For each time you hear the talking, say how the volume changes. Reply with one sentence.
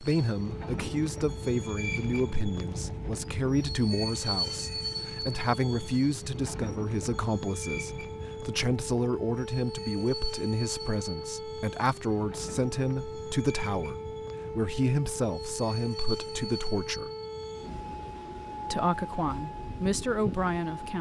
The talking can be heard from 0.0 to 17.1 s, at a steady volume; and briefly from 18.7 to 20.9 s.